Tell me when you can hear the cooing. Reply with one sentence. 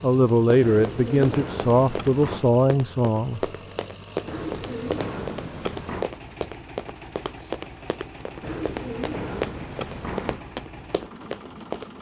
The cooing can be heard from 0.6 to 2.5 s, from 4.2 to 6.1 s and from 8.4 to 10.4 s.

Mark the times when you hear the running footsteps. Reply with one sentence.
You can hear the running footsteps from 0.2 to 11.9 s.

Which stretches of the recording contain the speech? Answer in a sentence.
The speech can be heard from 0.0 to 3.5 s.